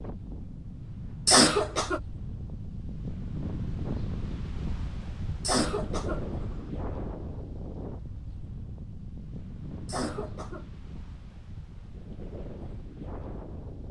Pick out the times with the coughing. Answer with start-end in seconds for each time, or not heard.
1.2-2.0, 5.4-6.6, 9.8-10.7.